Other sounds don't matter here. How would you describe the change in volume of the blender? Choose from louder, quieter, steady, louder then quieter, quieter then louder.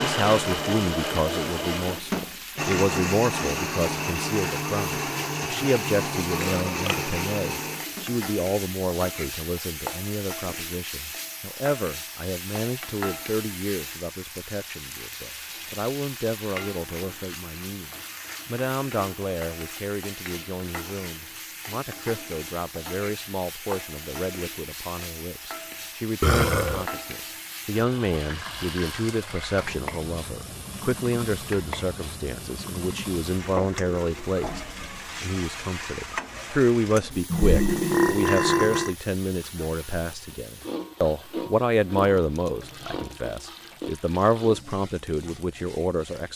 steady.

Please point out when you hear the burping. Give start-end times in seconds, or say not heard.
6.3-7.0, 26.2-26.9, 37.3-39.0.